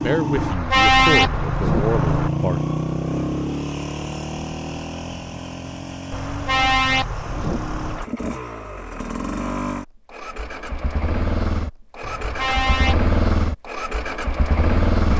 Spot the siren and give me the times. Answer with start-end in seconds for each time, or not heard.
not heard.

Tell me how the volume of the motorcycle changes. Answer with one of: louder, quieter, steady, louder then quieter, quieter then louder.
quieter then louder.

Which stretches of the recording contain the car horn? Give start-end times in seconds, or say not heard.
0.3-2.3, 6.1-8.1, 12.0-13.1.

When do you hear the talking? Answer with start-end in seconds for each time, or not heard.
0.0-2.6.